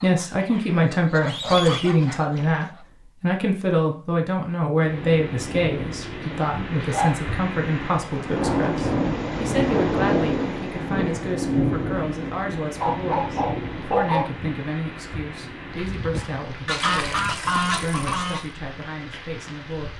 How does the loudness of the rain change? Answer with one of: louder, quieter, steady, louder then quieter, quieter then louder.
louder then quieter.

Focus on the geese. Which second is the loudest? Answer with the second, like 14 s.
18 s.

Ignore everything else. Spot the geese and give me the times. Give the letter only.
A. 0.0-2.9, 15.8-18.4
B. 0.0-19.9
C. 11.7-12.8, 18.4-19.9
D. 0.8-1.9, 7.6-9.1
A.